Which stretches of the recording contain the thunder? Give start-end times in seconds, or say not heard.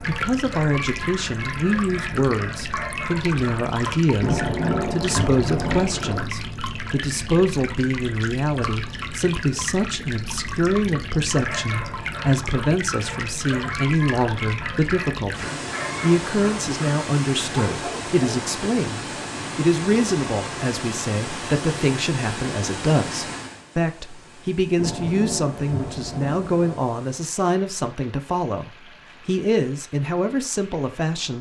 4.2-6.2, 24.8-26.8.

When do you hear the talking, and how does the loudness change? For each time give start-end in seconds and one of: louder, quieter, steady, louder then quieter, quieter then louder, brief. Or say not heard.
0.1-31.3 steady.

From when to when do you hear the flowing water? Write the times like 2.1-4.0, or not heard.
0.0-31.3.